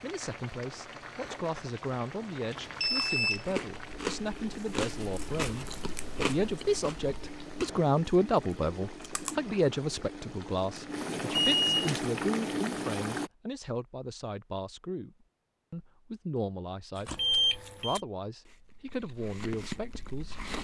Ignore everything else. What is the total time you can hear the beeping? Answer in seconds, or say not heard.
2 s.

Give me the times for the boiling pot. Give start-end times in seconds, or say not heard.
0.0-13.3.